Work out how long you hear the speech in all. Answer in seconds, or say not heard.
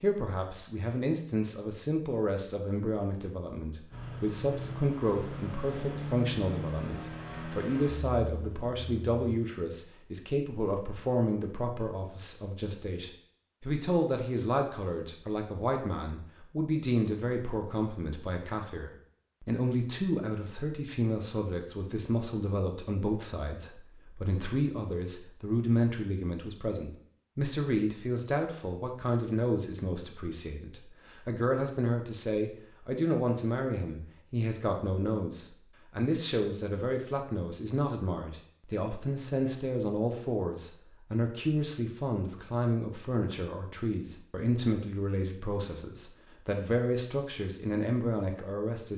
49 s.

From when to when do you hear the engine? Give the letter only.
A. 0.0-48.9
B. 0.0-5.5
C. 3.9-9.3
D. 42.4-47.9
C.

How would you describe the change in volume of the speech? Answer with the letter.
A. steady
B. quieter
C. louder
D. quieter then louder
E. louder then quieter
A.